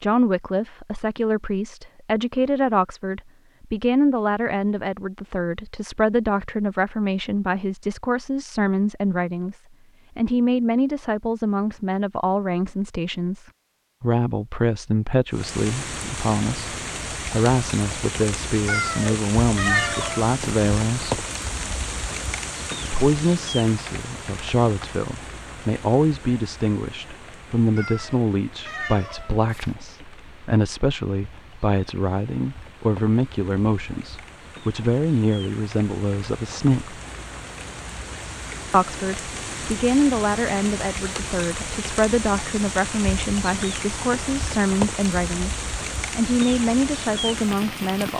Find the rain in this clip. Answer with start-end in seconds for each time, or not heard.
15.3-48.1.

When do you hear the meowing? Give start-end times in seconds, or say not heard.
18.6-20.2, 27.8-29.8.